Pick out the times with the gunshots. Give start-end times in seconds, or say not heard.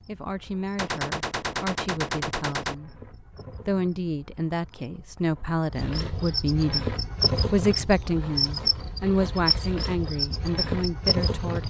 0.8-2.8.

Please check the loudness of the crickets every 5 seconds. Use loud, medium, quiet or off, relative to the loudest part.
quiet, loud, loud.